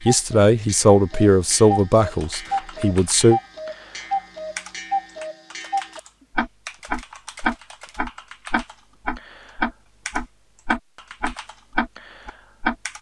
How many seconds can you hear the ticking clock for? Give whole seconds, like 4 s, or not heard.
13 s.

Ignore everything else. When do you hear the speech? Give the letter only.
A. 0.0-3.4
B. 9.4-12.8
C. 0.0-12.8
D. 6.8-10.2
A.